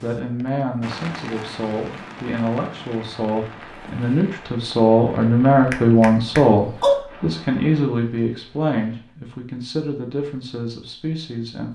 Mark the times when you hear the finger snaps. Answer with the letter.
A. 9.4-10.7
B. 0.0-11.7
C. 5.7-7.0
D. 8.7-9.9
C.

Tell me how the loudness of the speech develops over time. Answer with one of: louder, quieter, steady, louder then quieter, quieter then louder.
louder then quieter.